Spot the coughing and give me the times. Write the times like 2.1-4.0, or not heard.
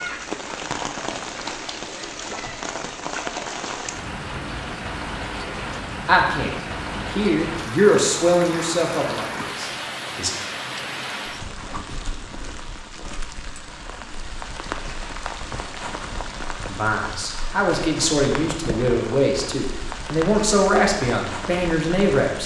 not heard.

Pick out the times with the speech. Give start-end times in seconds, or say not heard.
6.0-10.3, 16.6-22.4.